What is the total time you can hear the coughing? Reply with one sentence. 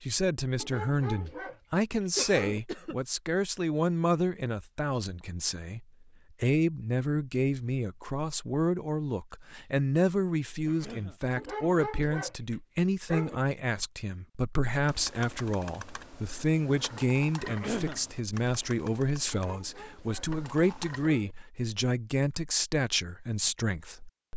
You can hear the coughing for 2 seconds altogether.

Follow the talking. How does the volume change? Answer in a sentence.
The volume of the talking stays about the same.